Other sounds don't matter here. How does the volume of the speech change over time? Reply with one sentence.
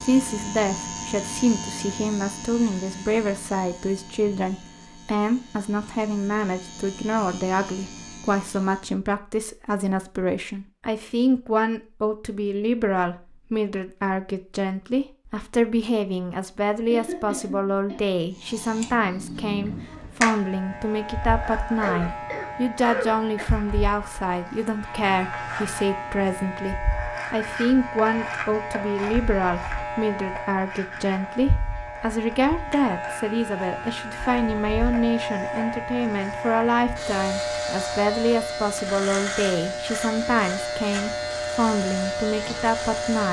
The volume of the speech stays about the same.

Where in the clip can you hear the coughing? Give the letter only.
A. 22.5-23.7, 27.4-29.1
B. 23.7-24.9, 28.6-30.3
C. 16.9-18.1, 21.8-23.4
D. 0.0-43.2
C.